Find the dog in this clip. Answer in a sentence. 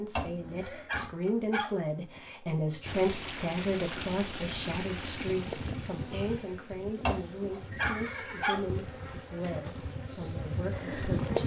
You can hear the dog from 0.1 to 1.8 s and from 7.0 to 8.7 s.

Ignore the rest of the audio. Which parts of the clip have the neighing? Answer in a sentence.
You can hear the neighing from 0.3 to 0.9 s and from 7.7 to 8.6 s.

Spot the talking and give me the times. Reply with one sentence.
You can hear the talking from 0.0 to 11.4 s.